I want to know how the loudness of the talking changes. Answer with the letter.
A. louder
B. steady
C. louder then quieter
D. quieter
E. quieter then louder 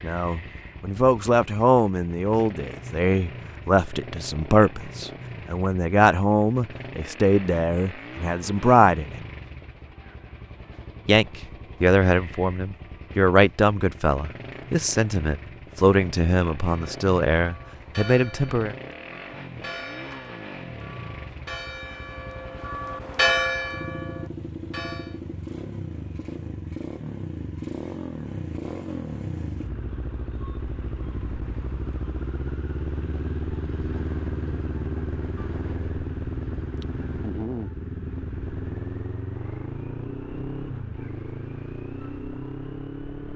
B.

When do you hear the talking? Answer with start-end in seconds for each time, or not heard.
0.0-9.2, 11.1-18.8.